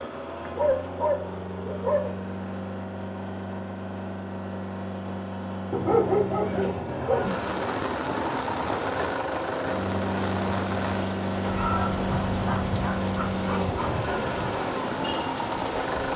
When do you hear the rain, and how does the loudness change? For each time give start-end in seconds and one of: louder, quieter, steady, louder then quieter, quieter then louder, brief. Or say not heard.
7.2-16.1 steady.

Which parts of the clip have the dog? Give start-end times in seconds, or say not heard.
0.5-2.2, 5.7-7.3, 11.4-14.1.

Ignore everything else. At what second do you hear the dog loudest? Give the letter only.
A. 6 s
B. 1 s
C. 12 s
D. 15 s
A.